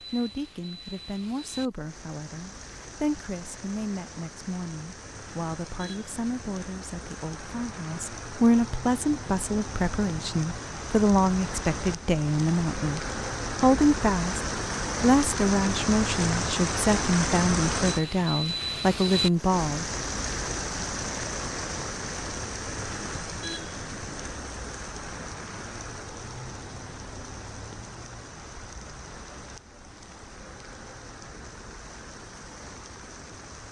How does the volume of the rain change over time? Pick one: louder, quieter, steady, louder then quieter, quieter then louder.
louder then quieter.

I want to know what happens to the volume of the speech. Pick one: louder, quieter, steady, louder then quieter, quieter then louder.
louder.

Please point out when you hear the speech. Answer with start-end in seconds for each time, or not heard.
0.1-19.9.